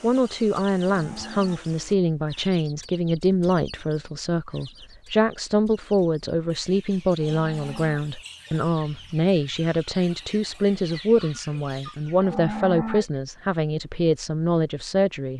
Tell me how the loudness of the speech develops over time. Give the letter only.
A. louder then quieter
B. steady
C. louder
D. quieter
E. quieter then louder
B.